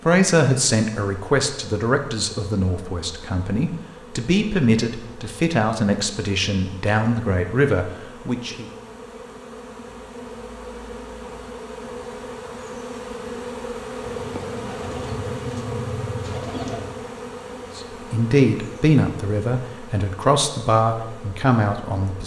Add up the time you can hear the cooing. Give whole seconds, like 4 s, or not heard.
3 s.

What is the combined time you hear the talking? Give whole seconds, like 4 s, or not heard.
13 s.